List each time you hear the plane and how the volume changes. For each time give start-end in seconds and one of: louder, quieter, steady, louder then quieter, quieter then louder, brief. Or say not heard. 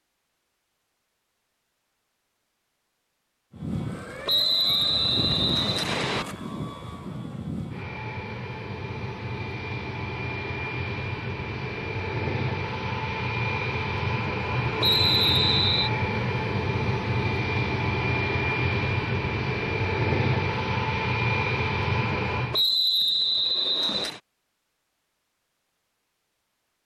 3.5-22.6 louder.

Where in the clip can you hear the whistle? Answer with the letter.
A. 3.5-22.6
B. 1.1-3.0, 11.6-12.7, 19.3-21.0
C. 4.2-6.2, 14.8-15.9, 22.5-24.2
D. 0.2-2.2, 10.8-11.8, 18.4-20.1
C.